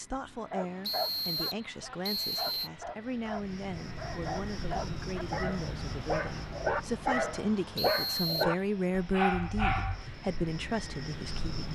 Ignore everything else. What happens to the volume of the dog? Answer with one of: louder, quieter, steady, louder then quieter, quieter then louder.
louder.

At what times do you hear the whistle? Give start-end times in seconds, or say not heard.
0.8-2.7, 7.8-8.6.